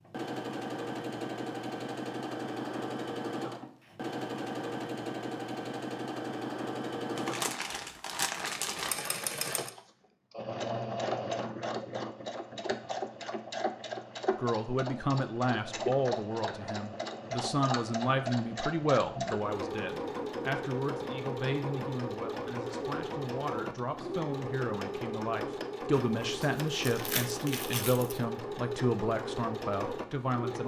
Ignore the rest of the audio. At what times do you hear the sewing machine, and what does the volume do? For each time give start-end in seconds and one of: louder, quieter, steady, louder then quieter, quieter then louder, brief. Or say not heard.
0.1-30.6 steady.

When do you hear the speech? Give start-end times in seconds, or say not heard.
14.3-30.6.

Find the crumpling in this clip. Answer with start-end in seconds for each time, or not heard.
7.2-8.9, 25.9-28.2.